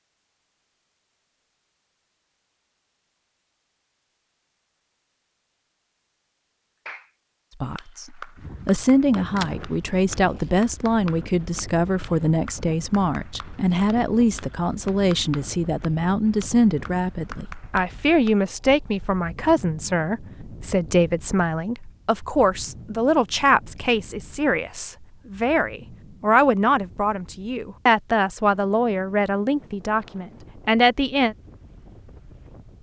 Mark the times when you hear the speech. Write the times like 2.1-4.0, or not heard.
7.6-31.4.